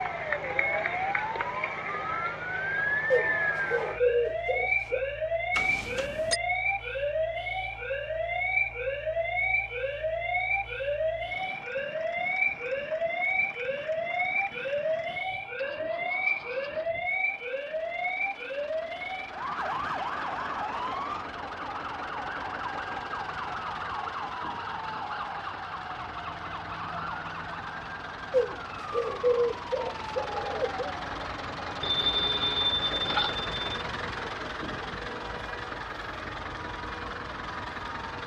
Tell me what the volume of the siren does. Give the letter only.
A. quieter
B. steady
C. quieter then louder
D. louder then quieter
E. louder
A.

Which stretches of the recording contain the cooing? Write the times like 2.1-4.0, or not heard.
3.1-5.0, 28.3-30.9.